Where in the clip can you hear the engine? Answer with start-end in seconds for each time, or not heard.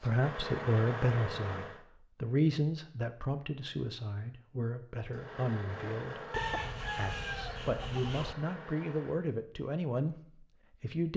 0.0-1.9, 5.0-9.2.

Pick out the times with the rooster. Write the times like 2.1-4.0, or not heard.
6.3-8.3.